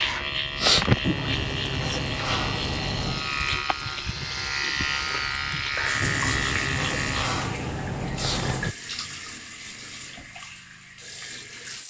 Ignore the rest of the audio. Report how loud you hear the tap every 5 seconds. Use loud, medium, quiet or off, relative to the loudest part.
loud, loud, medium.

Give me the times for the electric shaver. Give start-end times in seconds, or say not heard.
0.0-7.3.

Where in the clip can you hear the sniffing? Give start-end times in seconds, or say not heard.
0.6-1.0, 8.2-8.6.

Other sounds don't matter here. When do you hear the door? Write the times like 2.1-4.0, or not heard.
1.0-3.4, 6.0-8.8.